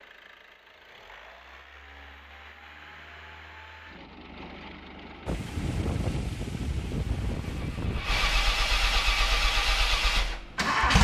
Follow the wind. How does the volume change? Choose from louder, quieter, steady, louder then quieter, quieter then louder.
quieter.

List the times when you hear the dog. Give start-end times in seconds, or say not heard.
not heard.